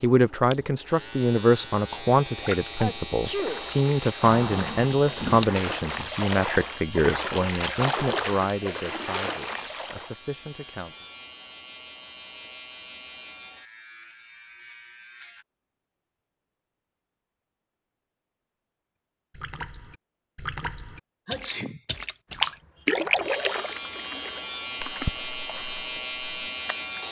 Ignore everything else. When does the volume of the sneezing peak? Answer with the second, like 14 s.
3 s.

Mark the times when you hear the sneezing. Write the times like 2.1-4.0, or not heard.
2.8-3.6, 21.2-21.8.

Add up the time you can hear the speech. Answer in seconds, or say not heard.
11 s.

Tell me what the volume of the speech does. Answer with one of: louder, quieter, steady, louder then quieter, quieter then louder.
quieter.